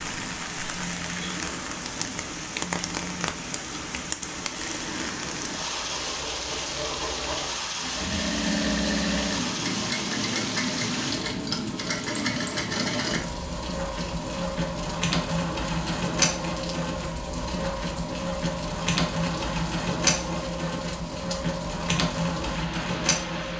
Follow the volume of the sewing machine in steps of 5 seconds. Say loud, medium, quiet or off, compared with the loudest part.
quiet, loud, loud, loud, loud.